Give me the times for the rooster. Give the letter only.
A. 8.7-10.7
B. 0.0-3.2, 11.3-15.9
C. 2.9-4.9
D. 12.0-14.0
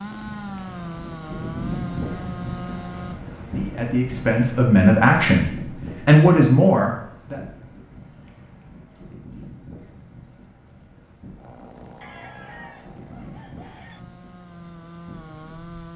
D.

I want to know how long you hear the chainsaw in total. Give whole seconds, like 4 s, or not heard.
8 s.